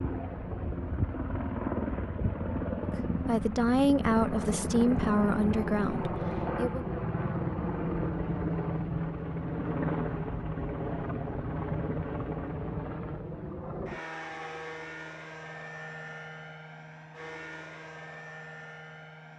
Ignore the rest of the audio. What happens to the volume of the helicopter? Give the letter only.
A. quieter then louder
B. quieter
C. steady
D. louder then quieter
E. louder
B.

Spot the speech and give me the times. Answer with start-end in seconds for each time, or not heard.
3.1-6.8.